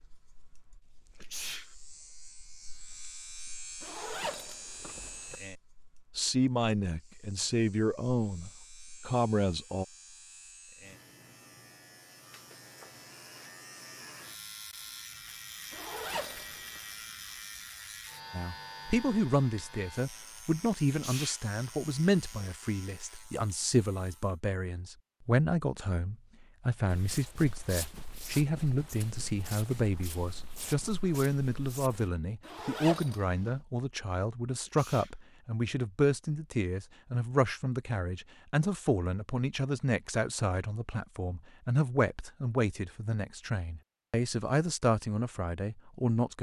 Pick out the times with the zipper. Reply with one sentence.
You can hear the zipper from 3.8 to 5.3 s, from 15.7 to 16.8 s and from 32.4 to 33.5 s.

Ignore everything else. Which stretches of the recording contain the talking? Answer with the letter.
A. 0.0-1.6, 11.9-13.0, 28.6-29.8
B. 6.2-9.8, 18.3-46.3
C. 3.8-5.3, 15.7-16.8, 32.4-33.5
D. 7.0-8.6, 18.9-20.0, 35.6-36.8
B.